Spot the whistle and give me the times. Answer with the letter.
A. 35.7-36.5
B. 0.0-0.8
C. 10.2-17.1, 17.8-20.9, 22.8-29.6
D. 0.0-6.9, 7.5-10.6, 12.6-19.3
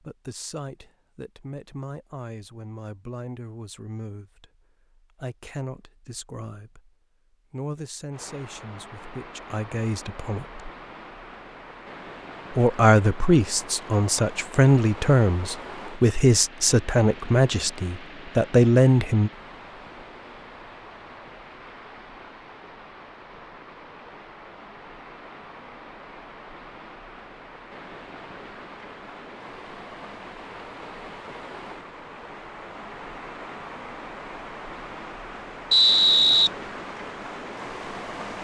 A.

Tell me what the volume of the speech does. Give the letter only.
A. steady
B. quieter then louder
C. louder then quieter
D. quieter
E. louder
E.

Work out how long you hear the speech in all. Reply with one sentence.
The speech can be heard for 17 seconds in total.